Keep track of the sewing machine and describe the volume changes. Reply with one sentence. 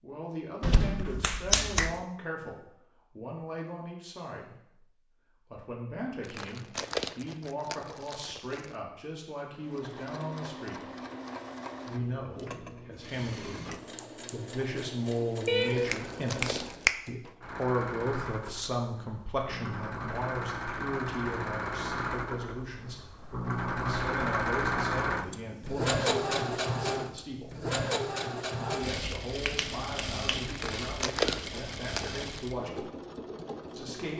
The volume of the sewing machine goes up, then down.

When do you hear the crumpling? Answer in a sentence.
You can hear the crumpling from 6.2 to 8.8 s, from 15.8 to 16.8 s and from 30.4 to 32.5 s.